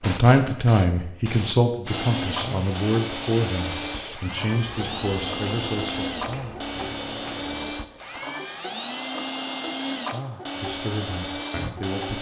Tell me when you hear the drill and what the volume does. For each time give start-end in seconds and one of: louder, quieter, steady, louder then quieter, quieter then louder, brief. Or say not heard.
1.9-12.1 steady.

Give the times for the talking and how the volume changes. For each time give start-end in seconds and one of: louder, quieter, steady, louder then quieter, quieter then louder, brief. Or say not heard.
0.0-6.0 quieter
10.6-12.1 brief.